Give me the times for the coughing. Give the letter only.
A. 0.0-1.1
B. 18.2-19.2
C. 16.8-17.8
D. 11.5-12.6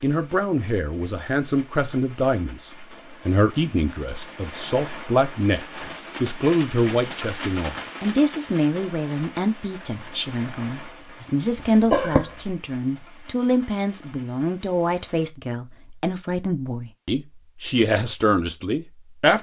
D.